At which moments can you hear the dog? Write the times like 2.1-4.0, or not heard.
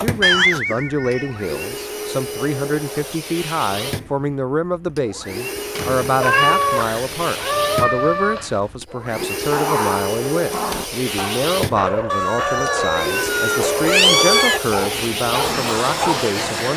9.2-16.6.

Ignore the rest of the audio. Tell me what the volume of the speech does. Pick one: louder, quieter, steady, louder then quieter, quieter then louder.
steady.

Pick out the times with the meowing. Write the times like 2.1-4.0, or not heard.
0.2-1.6, 6.2-8.6, 12.1-14.6.